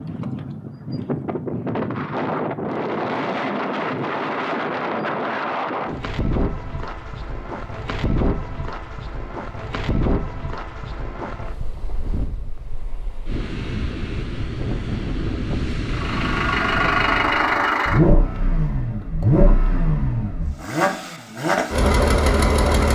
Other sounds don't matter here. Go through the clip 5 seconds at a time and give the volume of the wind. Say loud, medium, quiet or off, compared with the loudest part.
loud, loud, medium, loud, off.